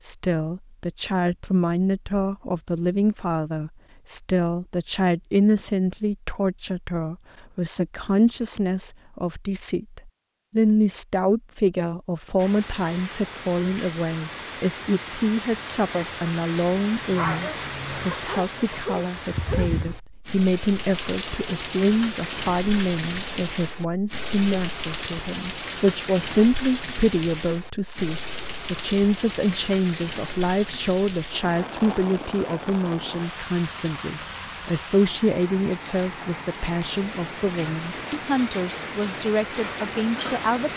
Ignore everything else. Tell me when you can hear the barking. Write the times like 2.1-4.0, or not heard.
17.1-20.0.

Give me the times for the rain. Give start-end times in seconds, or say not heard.
12.3-40.7.